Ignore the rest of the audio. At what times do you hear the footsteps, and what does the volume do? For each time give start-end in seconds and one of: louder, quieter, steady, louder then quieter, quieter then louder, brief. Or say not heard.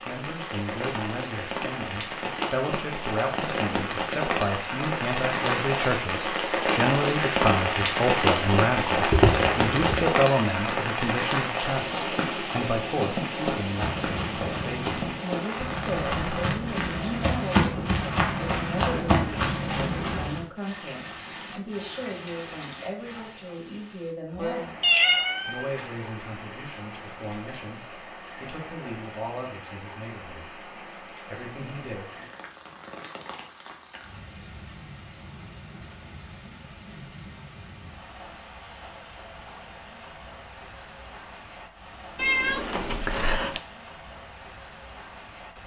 13.7-20.4 louder.